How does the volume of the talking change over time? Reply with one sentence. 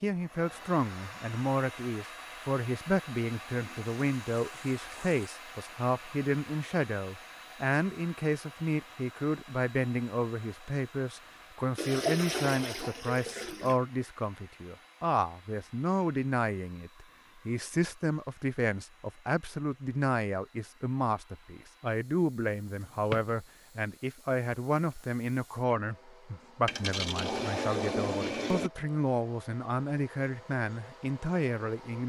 The loudness of the talking stays about the same.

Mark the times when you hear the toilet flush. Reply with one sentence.
You can hear the toilet flush from 3.5 to 5.3 s, from 11.8 to 13.8 s and from 26.6 to 28.7 s.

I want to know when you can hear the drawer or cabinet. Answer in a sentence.
The drawer or cabinet can be heard from 22.7 to 23.4 s.